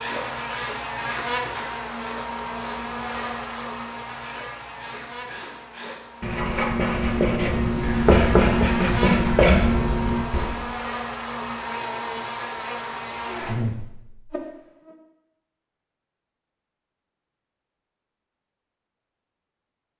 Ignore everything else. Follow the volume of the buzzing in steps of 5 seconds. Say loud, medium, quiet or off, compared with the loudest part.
loud, loud, loud, off.